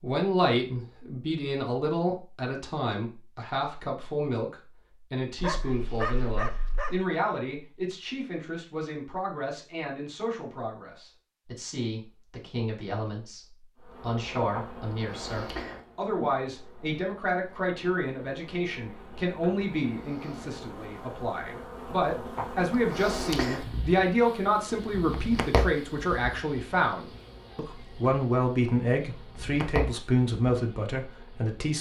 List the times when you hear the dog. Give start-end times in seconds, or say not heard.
5.3-7.0.